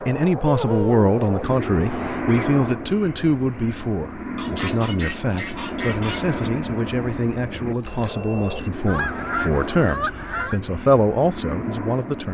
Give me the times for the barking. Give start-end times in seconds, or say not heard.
not heard.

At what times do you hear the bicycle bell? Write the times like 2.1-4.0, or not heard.
7.8-8.7.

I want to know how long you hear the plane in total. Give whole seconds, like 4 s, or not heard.
12 s.